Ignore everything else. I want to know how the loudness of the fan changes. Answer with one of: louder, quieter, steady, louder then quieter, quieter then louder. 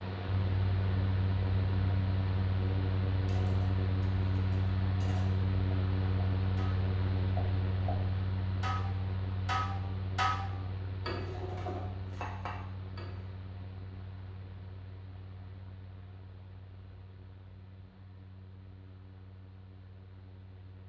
quieter.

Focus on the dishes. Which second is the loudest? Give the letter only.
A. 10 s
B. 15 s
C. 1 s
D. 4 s
A.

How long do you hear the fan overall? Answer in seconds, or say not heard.
21 s.